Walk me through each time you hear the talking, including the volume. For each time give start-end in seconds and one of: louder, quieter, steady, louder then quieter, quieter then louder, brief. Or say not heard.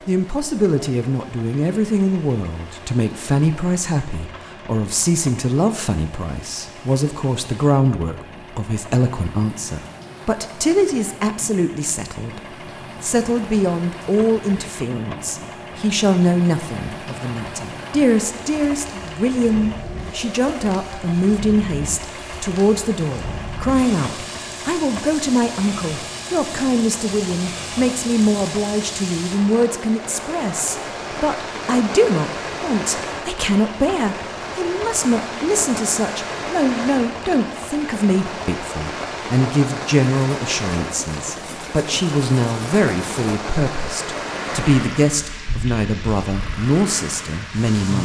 0.1-12.4 steady
13.0-48.0 steady.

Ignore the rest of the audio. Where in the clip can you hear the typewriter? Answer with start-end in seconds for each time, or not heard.
not heard.